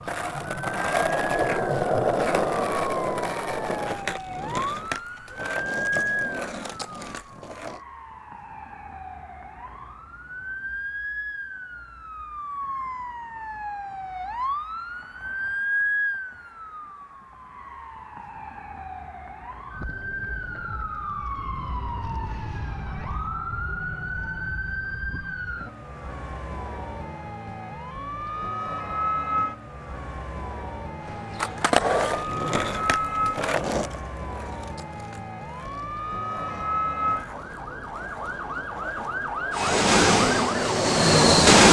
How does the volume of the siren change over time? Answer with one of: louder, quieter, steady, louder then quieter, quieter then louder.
steady.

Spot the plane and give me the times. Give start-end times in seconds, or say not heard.
39.5-41.6.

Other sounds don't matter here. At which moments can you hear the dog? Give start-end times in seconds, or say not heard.
not heard.